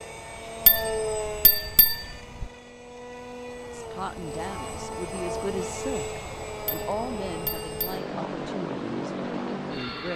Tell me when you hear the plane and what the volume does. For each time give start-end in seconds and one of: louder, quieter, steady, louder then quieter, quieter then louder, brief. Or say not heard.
0.0-10.1 quieter then louder.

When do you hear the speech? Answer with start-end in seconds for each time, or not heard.
3.7-10.1.